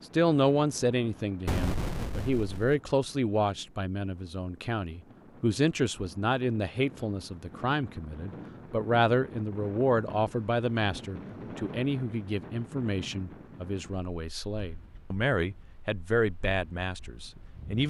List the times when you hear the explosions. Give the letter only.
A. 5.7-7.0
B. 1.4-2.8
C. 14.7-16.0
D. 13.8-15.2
B.